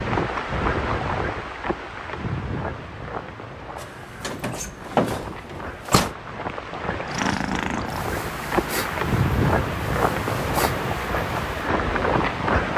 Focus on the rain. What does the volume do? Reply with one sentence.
The loudness of the rain goes down, then up.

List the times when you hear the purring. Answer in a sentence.
You can hear the purring from 7.0 to 12.7 s.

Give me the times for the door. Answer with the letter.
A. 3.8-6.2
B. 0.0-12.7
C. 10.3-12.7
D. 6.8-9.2
A.